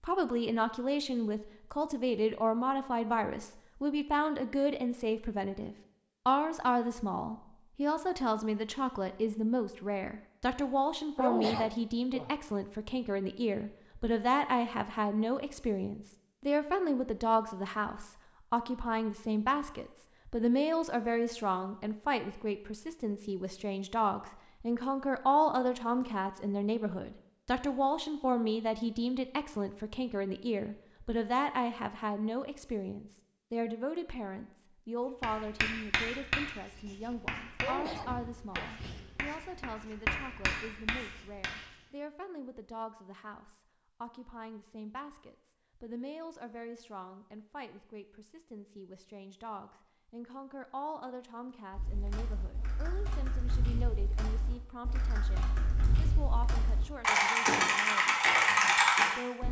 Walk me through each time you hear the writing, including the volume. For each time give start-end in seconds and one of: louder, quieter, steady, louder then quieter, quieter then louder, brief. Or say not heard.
35.2-41.6 quieter then louder.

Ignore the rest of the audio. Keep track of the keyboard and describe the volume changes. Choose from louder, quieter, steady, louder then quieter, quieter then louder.
louder.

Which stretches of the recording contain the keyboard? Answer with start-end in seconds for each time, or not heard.
51.7-59.4.